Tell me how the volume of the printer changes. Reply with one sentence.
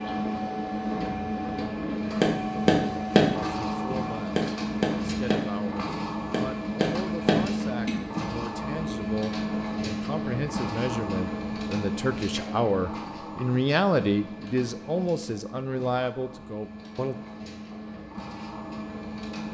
The loudness of the printer goes down.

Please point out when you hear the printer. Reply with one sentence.
You can hear the printer from 0.0 to 19.4 s.